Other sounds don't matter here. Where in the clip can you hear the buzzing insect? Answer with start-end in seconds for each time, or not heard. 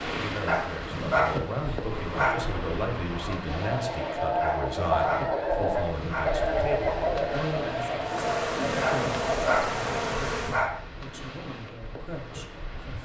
1.7-3.5, 8.0-10.7.